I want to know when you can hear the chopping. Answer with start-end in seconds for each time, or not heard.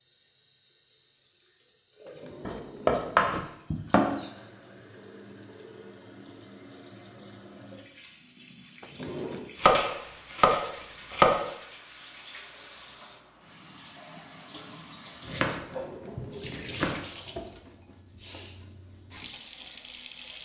2.5-4.2, 9.6-11.4, 15.2-17.0.